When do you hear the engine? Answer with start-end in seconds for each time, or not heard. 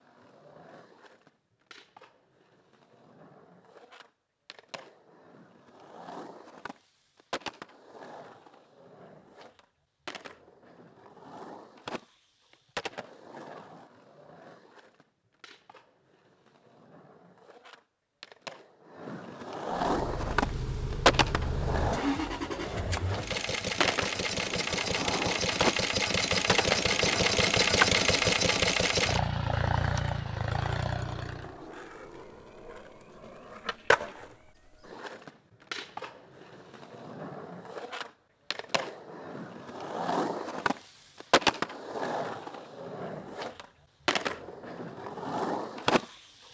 19.9-31.6.